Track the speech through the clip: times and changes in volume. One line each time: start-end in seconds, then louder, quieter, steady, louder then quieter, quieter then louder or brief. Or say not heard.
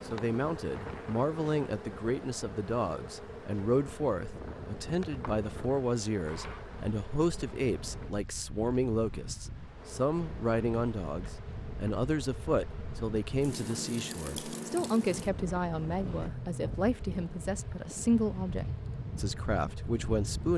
0.1-20.5 steady.